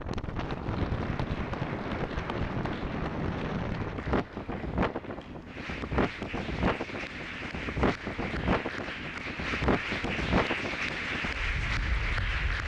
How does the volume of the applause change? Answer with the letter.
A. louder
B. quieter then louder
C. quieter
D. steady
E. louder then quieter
A.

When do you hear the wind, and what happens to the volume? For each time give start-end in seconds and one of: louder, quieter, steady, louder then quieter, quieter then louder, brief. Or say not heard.
0.0-12.6 steady.